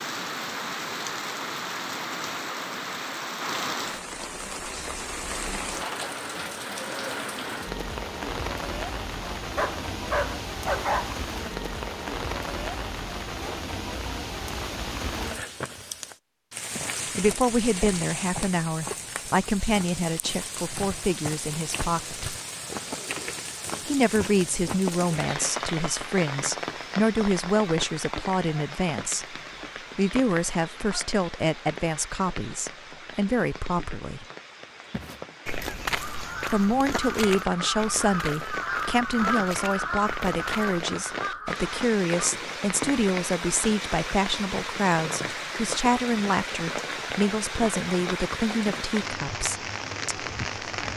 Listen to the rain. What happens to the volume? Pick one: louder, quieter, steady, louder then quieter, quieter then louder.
quieter then louder.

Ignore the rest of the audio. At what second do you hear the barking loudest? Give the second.
11 s.